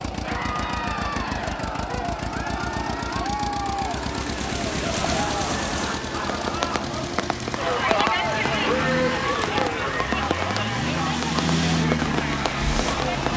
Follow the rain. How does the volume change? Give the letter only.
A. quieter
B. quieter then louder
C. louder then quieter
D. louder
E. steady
D.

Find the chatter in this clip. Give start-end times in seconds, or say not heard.
0.1-13.3.